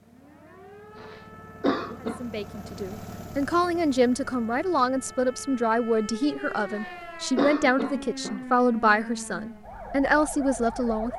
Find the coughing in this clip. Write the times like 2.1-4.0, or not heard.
0.9-2.2, 6.7-8.4.